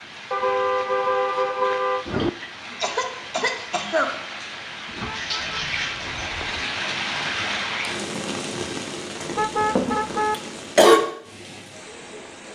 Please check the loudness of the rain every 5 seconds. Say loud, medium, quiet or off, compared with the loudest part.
medium, loud, medium.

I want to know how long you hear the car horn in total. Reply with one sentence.
The car horn can be heard for 5 seconds in total.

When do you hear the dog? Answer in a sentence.
You can't hear the dog here.